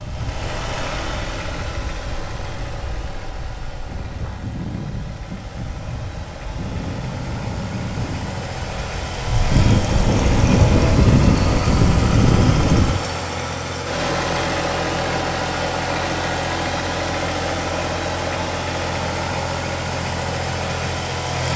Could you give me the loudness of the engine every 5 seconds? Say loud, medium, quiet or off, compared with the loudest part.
medium, medium, loud, loud, loud.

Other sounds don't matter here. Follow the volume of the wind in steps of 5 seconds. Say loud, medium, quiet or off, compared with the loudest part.
quiet, medium, loud, off, off.